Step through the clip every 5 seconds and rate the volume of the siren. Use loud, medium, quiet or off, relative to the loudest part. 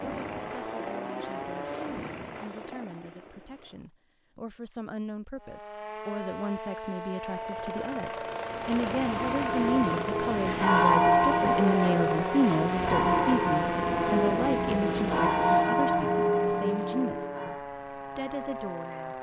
medium, medium, loud, medium.